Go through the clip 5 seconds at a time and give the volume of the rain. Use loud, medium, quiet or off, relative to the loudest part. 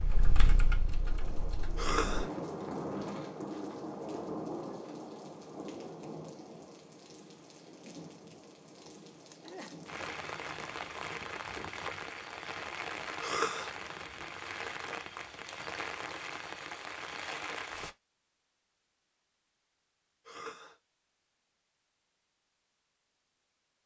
loud, medium, loud, loud, off.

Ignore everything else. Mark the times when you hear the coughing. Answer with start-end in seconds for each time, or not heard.
1.8-2.3, 13.2-13.7, 20.2-20.8.